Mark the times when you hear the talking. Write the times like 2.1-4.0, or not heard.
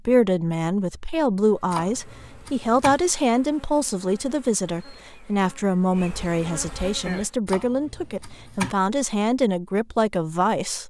0.1-10.8.